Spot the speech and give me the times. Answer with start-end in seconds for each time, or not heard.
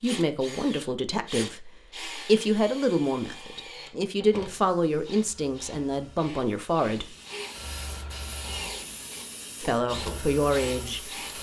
0.0-7.1, 9.6-11.1.